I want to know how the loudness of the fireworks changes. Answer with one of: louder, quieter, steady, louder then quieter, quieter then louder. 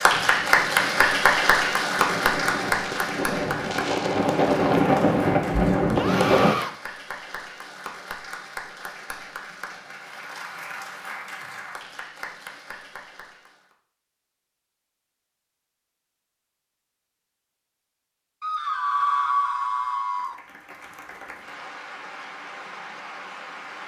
louder.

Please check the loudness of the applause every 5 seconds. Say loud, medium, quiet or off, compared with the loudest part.
loud, quiet, quiet, off, quiet.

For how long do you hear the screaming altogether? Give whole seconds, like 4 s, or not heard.
3 s.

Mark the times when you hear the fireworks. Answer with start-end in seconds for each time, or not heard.
0.1-6.5.